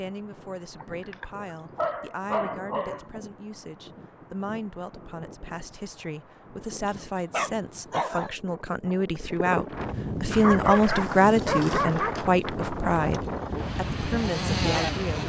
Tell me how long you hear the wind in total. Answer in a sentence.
You can hear the wind for 15 seconds altogether.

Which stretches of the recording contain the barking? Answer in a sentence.
You can hear the barking from 0.8 to 3.2 s, from 6.8 to 8.3 s and from 10.2 to 12.1 s.